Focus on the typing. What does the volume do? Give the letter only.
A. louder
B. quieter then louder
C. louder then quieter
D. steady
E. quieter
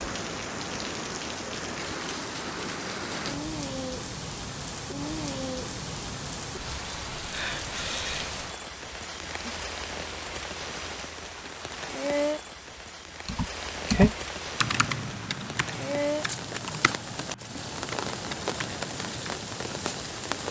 E.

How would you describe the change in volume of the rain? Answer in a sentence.
The loudness of the rain stays about the same.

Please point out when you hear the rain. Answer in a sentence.
You can hear the rain from 0.0 to 20.4 s.